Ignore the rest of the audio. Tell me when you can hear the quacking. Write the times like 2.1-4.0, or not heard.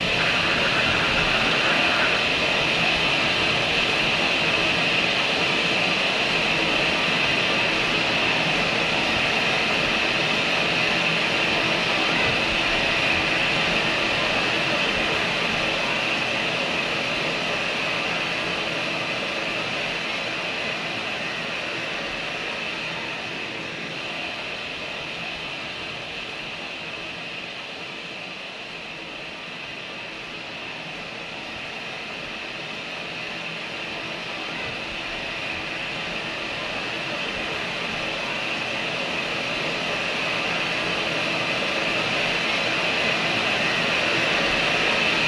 0.1-2.2.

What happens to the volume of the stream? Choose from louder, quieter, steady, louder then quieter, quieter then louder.
quieter then louder.